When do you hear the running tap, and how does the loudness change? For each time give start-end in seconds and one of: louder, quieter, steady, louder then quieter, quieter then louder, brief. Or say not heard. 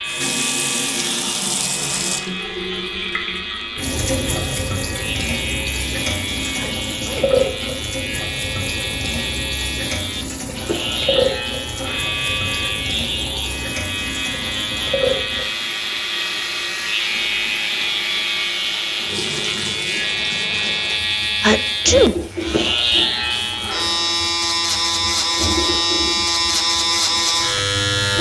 0.1-28.1 quieter.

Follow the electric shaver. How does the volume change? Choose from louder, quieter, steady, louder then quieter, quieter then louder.
louder.